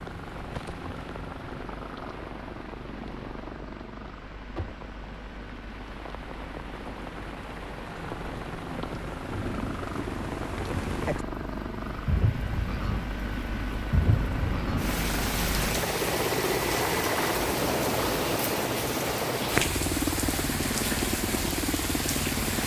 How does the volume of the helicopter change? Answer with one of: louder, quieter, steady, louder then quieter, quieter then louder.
louder.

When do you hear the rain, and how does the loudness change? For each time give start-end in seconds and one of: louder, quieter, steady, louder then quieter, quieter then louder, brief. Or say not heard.
0.0-22.6 louder.